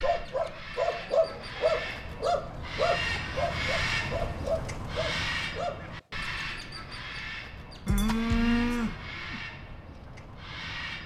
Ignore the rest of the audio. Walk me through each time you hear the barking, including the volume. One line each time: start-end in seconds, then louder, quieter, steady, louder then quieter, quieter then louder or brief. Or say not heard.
0.0-6.2 quieter.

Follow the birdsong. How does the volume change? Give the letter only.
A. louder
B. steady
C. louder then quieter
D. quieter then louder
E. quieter
C.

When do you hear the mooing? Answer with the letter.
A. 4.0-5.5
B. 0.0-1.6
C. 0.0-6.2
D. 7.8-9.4
D.